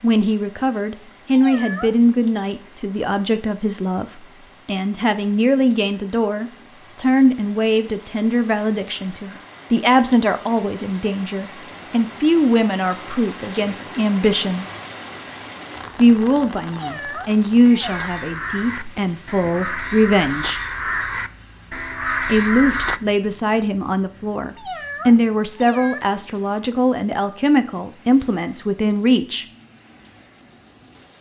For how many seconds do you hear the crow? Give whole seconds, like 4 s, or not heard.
5 s.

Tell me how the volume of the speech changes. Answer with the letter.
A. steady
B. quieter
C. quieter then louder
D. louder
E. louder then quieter
A.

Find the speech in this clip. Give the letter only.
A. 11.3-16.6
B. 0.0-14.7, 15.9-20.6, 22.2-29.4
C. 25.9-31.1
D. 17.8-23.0
B.